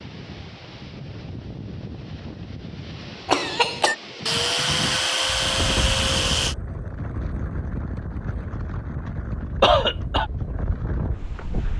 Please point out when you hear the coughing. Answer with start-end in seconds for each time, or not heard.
3.2-4.0, 9.6-10.2.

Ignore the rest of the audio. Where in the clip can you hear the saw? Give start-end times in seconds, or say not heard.
4.2-6.5.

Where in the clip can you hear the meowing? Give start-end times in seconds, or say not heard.
not heard.